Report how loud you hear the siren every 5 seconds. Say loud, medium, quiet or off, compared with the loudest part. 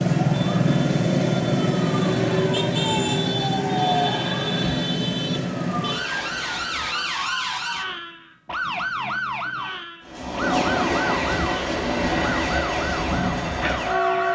loud, medium, medium.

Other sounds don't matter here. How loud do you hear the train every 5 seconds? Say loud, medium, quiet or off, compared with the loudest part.
medium, quiet, loud.